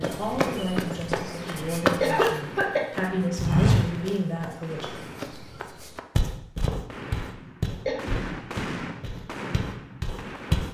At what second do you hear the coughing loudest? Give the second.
2 s.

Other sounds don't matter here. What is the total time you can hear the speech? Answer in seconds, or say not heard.
5 s.